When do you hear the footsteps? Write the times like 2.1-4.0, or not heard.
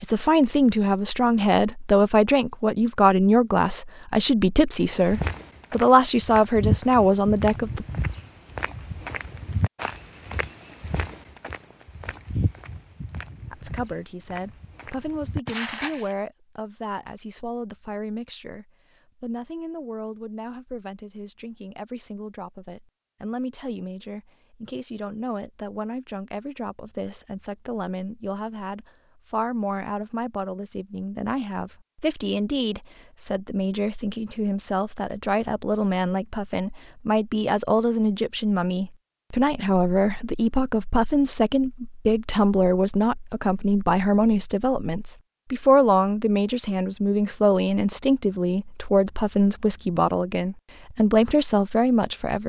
4.8-16.1.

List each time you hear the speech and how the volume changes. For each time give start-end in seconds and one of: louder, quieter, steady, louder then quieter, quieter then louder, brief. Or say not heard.
0.0-7.8 steady
13.5-52.4 louder.